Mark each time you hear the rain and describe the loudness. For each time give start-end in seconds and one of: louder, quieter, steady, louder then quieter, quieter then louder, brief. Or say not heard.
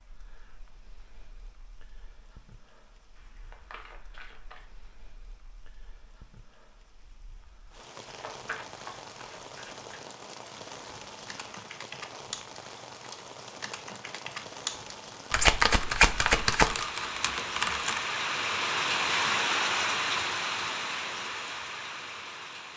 0.0-22.7 louder.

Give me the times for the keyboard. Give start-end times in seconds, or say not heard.
11.2-18.0.